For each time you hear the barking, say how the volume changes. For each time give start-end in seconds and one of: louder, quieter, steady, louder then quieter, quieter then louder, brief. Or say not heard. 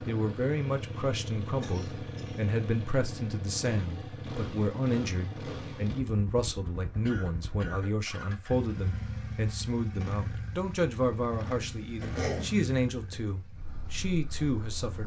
not heard.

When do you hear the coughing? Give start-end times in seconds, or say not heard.
1.6-2.4, 7.0-8.4, 12.0-12.5.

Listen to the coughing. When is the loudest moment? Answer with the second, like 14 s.
12 s.